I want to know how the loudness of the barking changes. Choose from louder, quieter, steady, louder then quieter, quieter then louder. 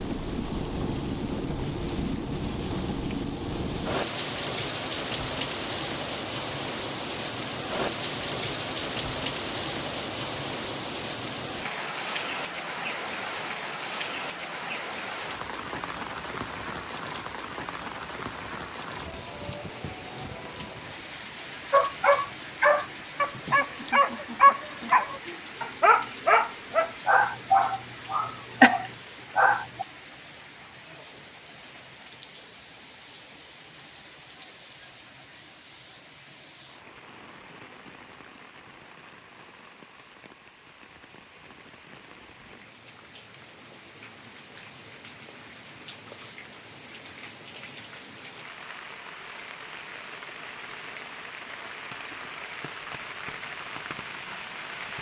steady.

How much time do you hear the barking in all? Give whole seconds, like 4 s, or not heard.
8 s.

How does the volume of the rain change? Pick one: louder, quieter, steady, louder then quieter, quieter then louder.
quieter then louder.